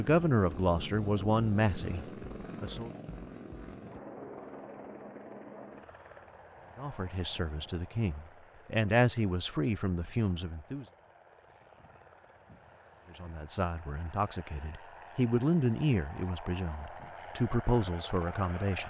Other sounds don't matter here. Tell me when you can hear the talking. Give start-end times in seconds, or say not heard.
0.0-2.9, 6.8-10.8, 13.1-18.8.